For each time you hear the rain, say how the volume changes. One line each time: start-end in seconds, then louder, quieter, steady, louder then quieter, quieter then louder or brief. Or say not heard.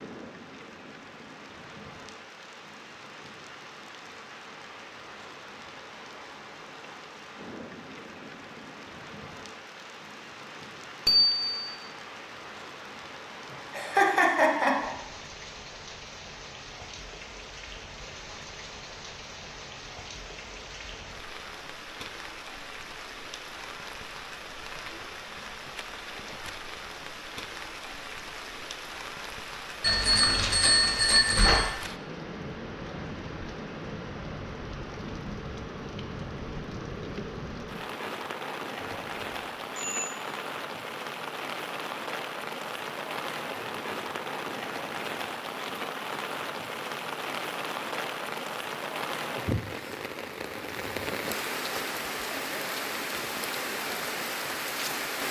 0.0-55.2 louder.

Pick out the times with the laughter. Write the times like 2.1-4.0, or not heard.
13.7-14.9.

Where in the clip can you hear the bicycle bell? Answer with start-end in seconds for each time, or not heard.
11.1-11.7, 29.8-31.7, 38.8-40.1.